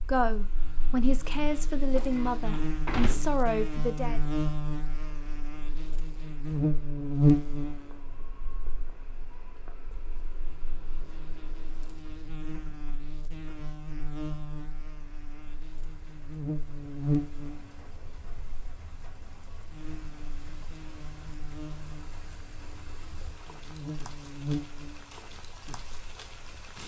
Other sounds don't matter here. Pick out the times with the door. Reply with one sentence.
You can hear the door from 1.9 to 3.2 s.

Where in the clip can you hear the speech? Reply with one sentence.
You can hear the speech from 0.0 to 4.2 s.